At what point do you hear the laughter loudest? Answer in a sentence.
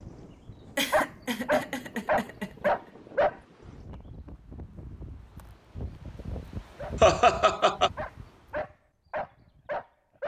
The volume of the laughter peaks at 7 seconds.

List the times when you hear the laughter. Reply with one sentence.
The laughter can be heard from 0.8 to 2.7 s and from 7.0 to 7.9 s.